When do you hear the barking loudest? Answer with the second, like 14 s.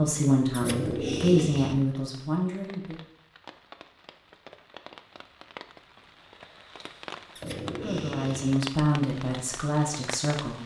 1 s.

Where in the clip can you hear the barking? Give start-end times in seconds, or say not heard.
0.5-1.8, 7.3-8.6.